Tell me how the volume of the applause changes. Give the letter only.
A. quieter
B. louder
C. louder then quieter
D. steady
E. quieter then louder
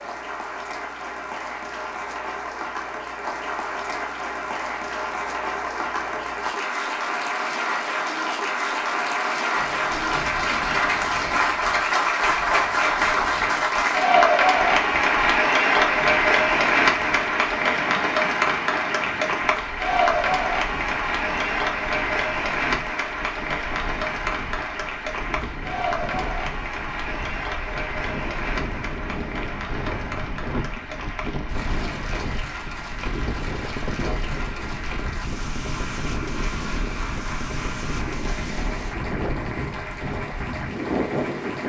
C.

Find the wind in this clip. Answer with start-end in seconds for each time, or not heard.
9.6-41.6.